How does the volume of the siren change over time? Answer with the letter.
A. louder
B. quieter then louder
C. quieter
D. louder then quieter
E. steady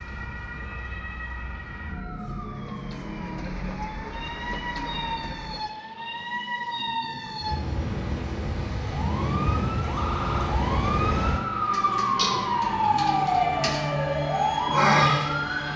A.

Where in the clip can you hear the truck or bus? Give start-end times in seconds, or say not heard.
2.0-6.5.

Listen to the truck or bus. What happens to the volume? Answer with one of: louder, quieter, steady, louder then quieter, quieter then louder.
louder then quieter.